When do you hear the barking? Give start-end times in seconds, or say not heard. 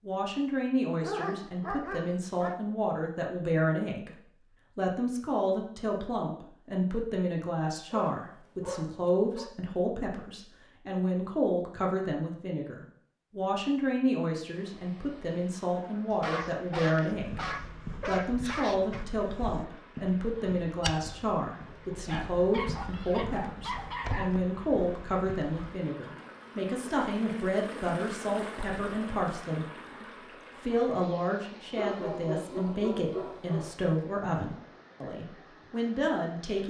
1.0-2.6, 7.9-9.5, 16.1-19.1, 22.1-24.4, 31.8-33.8.